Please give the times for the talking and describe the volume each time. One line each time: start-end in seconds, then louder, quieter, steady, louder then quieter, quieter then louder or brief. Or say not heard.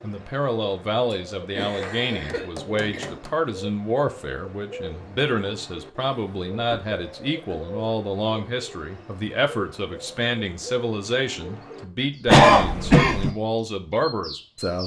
0.0-14.8 steady.